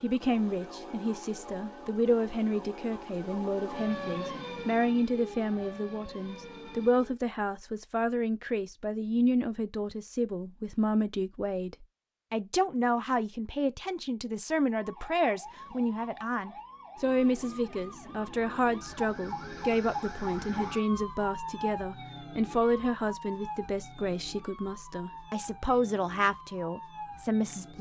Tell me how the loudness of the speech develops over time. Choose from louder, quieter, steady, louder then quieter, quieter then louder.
steady.